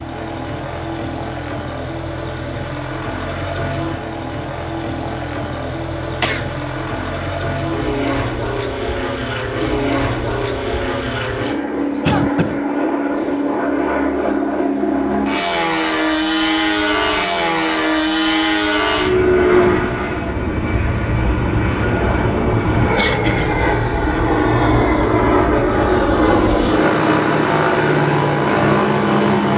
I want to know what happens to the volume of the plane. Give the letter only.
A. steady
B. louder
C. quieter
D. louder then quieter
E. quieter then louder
B.